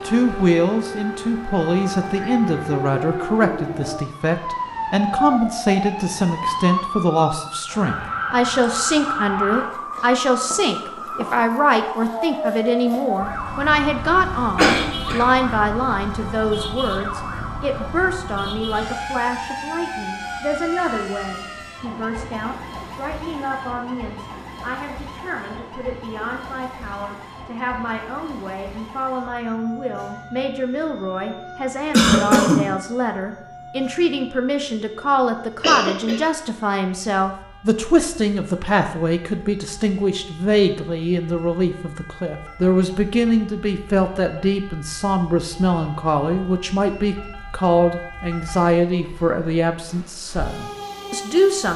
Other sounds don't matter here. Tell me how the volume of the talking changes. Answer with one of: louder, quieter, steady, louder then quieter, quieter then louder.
quieter then louder.